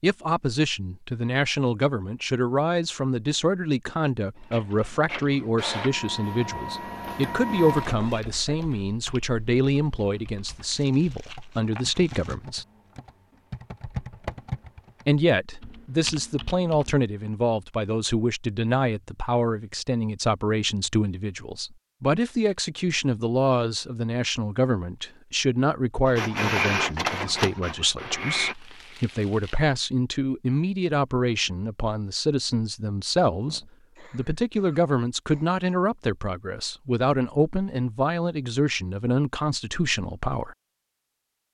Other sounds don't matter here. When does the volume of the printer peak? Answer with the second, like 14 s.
27 s.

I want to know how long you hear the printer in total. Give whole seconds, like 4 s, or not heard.
6 s.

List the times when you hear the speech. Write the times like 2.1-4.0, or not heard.
0.0-12.7, 15.1-40.5.